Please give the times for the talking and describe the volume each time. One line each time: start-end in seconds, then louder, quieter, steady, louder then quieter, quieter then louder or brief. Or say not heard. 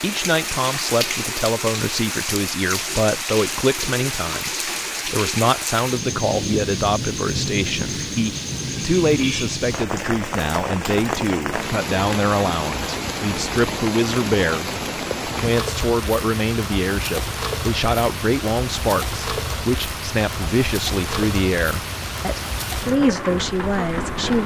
0.0-24.4 steady.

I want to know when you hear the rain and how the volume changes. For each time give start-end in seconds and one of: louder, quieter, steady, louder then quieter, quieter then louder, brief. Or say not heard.
0.0-24.4 steady.